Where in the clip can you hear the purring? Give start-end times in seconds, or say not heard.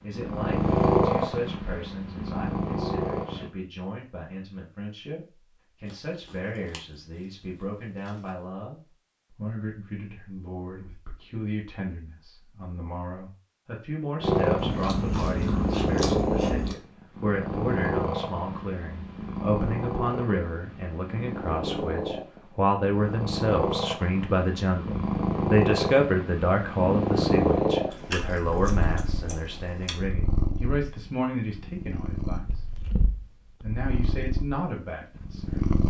0.1-3.5, 14.2-35.8.